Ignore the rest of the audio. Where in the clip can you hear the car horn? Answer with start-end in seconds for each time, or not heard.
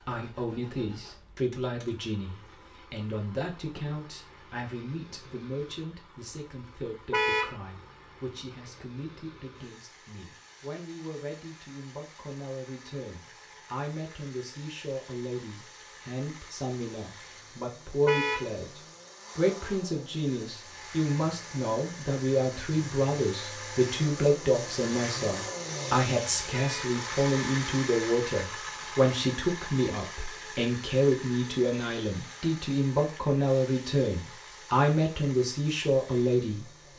7.1-7.5, 18.1-18.5, 26.5-26.9.